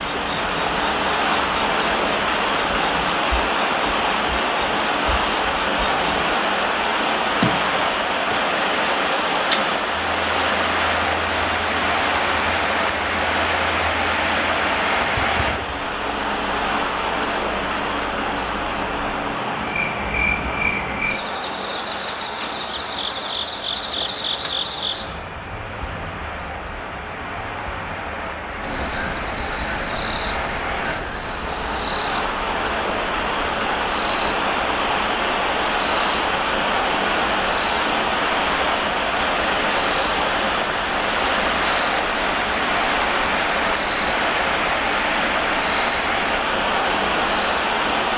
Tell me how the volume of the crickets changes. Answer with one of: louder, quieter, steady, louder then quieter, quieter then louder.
louder then quieter.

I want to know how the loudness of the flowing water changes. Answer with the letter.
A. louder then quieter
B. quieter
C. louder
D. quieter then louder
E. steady
D.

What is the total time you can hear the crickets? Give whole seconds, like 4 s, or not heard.
48 s.